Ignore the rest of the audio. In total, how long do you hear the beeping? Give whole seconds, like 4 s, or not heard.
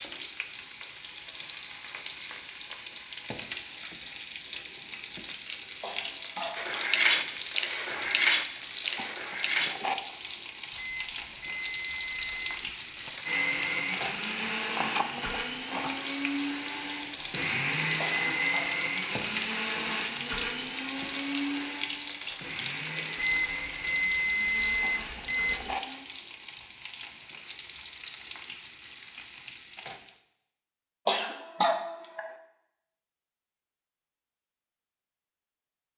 4 s.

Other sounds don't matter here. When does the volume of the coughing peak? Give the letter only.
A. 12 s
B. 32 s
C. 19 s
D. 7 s
B.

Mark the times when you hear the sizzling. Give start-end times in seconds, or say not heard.
0.0-30.2.